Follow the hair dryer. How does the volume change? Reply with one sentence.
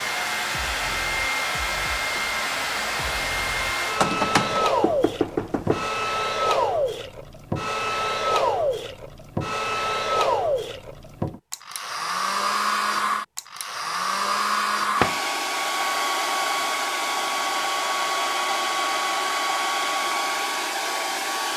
The loudness of the hair dryer stays about the same.